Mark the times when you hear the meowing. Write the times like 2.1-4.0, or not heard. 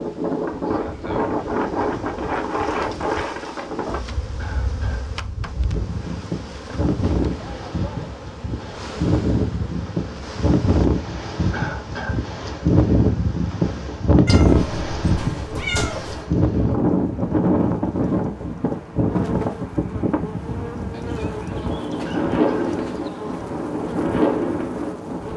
14.2-16.3.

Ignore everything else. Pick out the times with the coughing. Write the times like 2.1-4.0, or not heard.
4.3-5.0, 11.5-12.2, 22.1-22.7.